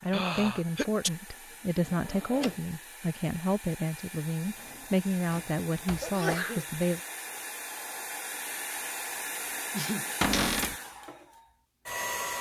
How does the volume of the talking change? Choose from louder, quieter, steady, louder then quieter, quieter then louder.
steady.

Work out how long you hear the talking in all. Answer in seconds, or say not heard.
7 s.